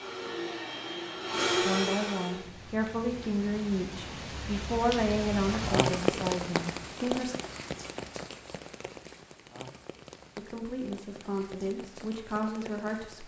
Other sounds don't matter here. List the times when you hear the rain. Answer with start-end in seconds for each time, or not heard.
2.2-13.2.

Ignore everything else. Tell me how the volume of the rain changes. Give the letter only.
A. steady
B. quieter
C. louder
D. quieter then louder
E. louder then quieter
E.